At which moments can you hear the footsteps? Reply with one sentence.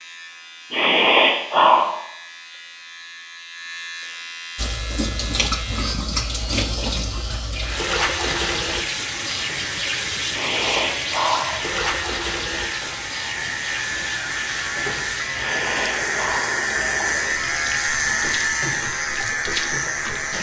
You can't hear the footsteps here.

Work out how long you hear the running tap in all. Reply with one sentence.
You can hear the running tap for 16 seconds altogether.